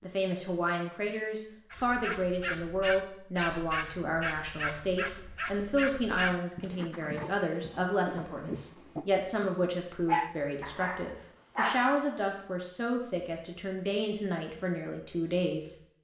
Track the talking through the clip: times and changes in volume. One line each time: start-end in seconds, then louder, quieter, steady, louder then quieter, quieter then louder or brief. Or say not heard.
0.0-15.8 steady.